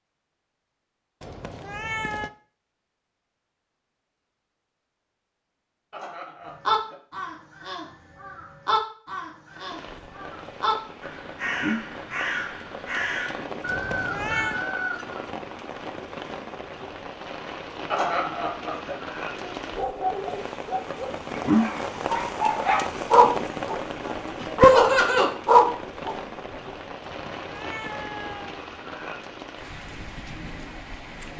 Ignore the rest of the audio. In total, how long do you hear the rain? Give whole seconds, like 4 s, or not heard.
22 s.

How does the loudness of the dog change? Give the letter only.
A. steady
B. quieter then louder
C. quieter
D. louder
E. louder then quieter
D.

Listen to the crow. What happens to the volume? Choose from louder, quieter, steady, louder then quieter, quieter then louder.
louder.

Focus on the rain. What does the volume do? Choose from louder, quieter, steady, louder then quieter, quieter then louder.
louder then quieter.